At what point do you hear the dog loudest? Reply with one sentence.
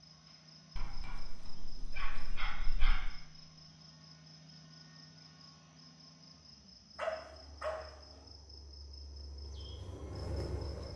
The loudest moment of the dog is at 7 seconds.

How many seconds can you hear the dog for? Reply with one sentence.
The dog can be heard for 3 seconds in total.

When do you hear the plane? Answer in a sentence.
You can hear the plane from 7.0 to 10.9 s.